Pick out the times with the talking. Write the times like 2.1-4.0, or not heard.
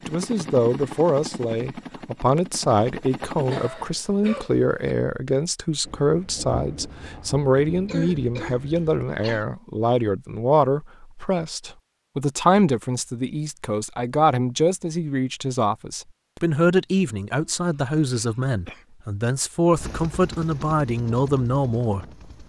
0.1-22.1.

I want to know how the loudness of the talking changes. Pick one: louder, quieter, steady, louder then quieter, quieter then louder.
steady.